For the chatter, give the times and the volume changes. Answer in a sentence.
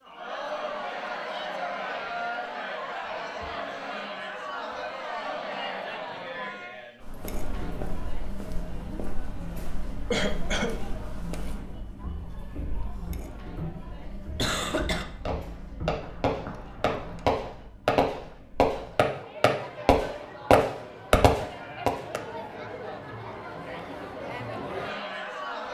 You can hear the chatter from 0.0 to 25.6 s, getting quieter then louder.